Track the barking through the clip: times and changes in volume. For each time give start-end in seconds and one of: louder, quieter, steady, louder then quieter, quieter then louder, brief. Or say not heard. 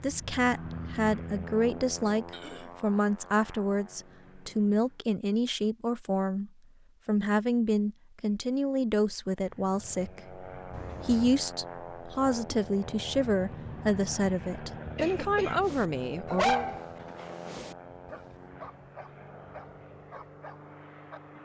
15.7-21.2 quieter.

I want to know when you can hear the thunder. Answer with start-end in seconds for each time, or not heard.
not heard.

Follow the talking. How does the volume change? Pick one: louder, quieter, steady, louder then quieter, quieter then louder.
steady.